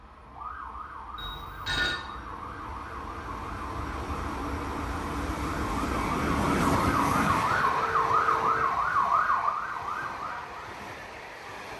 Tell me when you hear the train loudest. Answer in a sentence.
The volume of the train peaks at 7 seconds.